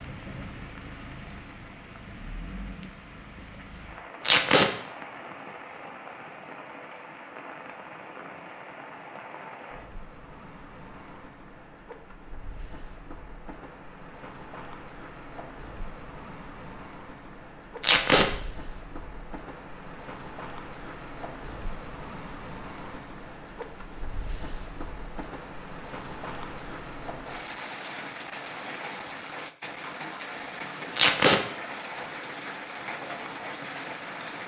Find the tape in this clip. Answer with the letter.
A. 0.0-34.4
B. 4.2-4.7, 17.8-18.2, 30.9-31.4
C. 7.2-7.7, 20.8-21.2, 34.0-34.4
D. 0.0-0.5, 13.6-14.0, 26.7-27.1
B.